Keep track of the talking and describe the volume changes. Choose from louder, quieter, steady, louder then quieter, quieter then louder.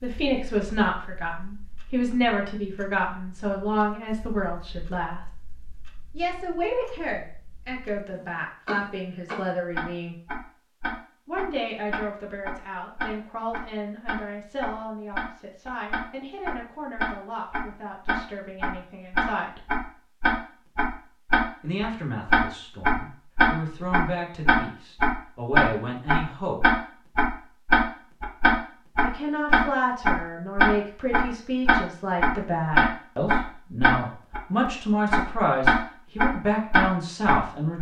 quieter then louder.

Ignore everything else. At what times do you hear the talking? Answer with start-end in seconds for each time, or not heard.
0.0-5.2, 6.2-10.2, 11.2-19.6, 21.6-26.8, 29.0-37.7.